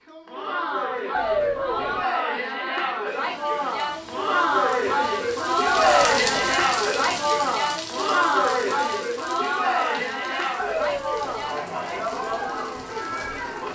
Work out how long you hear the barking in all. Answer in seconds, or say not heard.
3 s.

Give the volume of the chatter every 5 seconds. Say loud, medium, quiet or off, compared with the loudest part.
loud, loud, medium.